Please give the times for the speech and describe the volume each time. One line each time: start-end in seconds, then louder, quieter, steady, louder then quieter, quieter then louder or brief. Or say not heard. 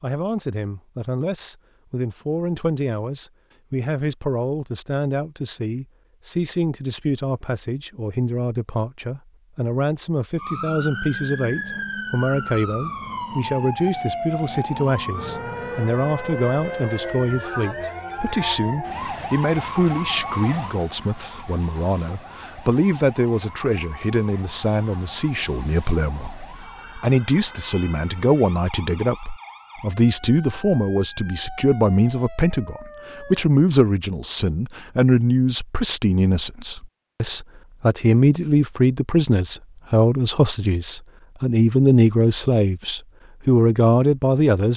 0.0-44.7 louder.